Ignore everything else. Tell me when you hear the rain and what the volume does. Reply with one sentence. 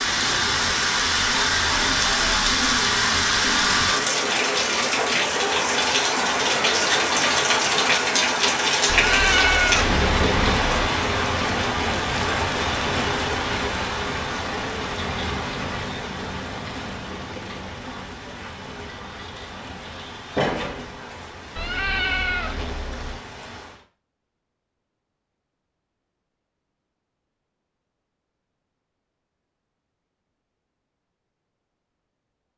The rain can be heard from 0.0 to 23.9 s, getting quieter.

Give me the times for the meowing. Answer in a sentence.
You can hear the meowing from 8.8 to 10.9 s and from 21.6 to 23.2 s.